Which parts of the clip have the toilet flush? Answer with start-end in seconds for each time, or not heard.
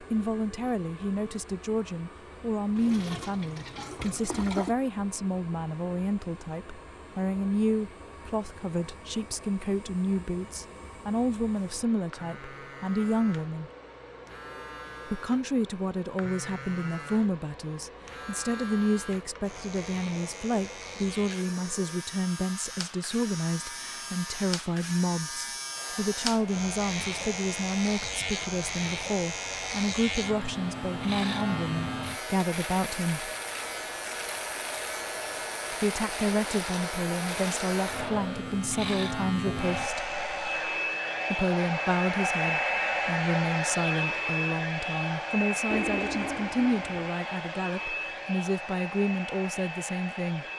2.8-4.8, 45.7-47.1.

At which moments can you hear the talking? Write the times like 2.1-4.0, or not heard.
0.0-13.7, 15.1-33.3, 35.7-40.0, 41.3-50.5.